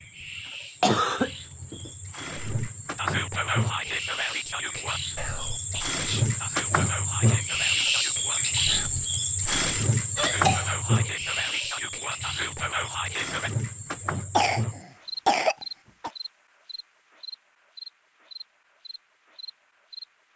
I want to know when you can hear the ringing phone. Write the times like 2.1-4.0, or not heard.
not heard.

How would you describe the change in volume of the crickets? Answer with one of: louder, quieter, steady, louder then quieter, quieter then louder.
louder then quieter.